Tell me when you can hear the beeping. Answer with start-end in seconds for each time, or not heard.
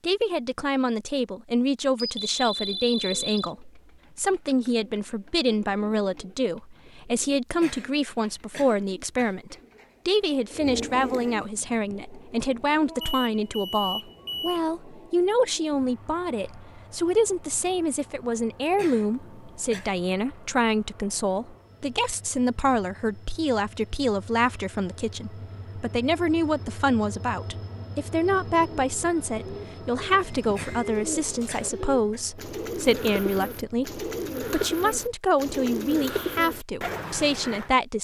1.9-3.5, 13.0-14.6, 30.2-31.7.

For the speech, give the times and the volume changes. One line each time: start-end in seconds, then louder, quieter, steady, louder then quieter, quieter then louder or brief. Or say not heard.
0.0-37.9 steady.